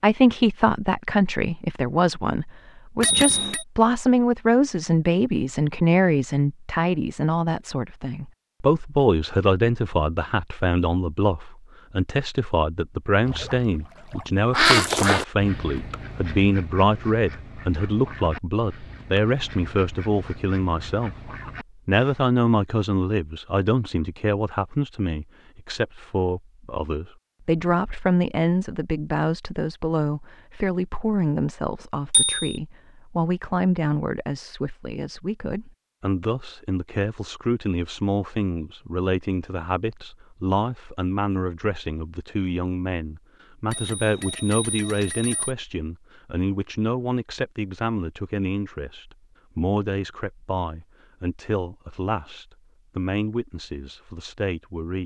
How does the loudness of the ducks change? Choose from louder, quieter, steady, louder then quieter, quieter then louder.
quieter.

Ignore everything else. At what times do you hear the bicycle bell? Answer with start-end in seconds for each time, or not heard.
3.0-3.6, 32.1-32.5, 43.7-45.5.